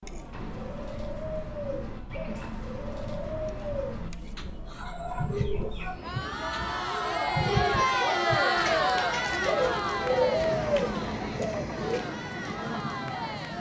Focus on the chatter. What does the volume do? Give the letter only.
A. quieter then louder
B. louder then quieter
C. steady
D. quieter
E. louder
B.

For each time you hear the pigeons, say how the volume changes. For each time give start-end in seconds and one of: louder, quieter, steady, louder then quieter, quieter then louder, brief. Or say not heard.
0.3-12.0 louder.